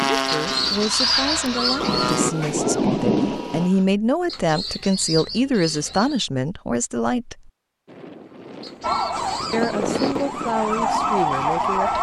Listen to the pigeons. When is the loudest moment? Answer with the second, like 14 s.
1 s.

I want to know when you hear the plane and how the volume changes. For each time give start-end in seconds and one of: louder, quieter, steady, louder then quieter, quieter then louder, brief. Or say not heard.
0.0-2.4 brief
7.8-11.8 louder then quieter.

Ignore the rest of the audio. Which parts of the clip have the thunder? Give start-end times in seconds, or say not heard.
1.8-3.7.